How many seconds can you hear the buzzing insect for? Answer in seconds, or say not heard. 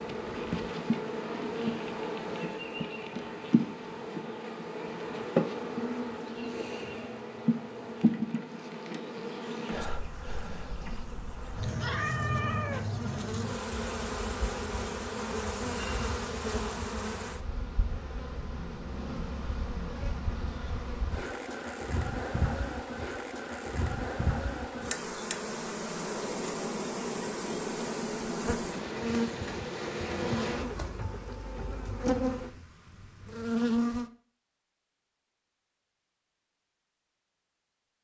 34 s.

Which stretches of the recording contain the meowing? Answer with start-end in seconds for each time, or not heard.
11.3-12.8.